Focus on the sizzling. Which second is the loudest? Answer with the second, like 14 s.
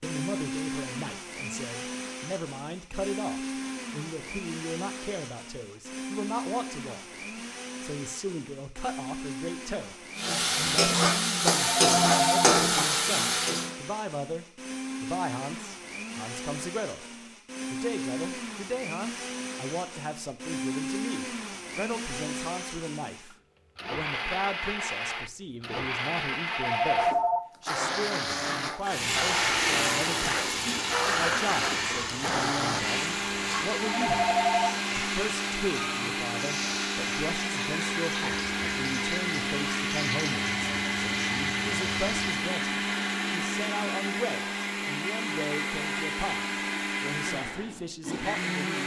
12 s.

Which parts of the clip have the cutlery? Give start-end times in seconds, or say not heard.
not heard.